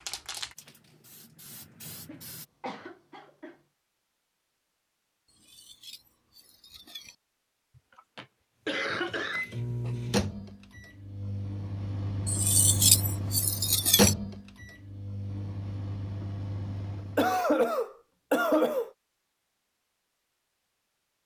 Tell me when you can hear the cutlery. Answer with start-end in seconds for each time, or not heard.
5.2-7.2, 12.2-14.2.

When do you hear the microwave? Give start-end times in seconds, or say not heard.
8.7-17.4.